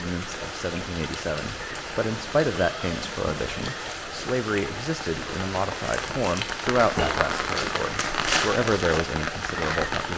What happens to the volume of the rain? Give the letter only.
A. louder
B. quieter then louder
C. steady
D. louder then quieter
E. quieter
A.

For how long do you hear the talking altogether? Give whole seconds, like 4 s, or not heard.
10 s.